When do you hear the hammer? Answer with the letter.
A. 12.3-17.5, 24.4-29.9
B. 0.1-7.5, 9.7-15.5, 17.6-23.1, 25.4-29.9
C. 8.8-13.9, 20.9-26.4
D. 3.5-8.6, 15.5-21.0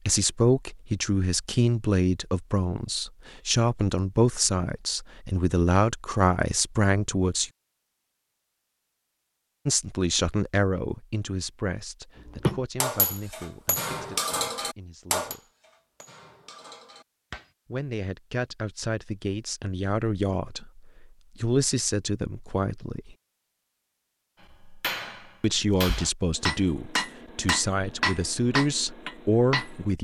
A.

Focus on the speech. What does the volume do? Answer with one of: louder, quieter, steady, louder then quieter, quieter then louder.
quieter then louder.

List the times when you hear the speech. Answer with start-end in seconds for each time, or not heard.
0.1-7.5, 9.7-15.5, 17.6-23.1, 25.4-29.9.